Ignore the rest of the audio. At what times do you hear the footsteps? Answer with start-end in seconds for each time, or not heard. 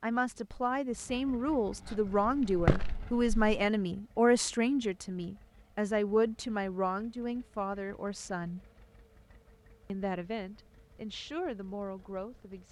1.9-3.5.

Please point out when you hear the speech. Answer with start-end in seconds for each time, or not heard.
0.0-8.6, 9.8-12.6.